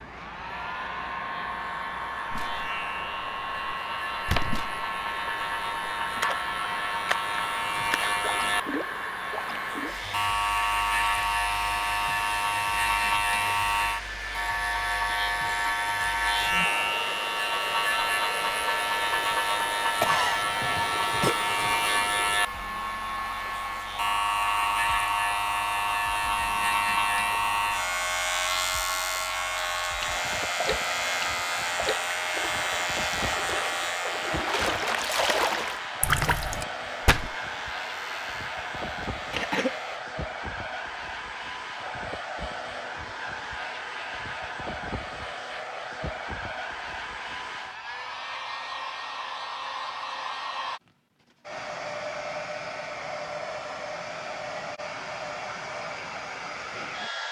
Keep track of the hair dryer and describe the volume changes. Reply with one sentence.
The volume of the hair dryer stays about the same.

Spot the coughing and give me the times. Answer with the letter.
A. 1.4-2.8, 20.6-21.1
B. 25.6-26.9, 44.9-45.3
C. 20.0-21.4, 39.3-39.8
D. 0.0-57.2
C.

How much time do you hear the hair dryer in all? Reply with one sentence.
The hair dryer can be heard for 57 seconds in total.